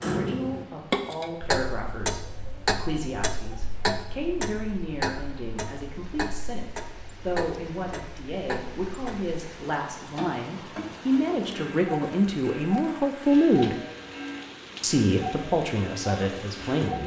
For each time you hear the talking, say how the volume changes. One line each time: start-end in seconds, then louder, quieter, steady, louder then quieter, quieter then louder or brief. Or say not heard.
0.0-13.8 louder
14.8-17.0 brief.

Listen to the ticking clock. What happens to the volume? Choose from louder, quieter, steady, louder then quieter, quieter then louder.
quieter.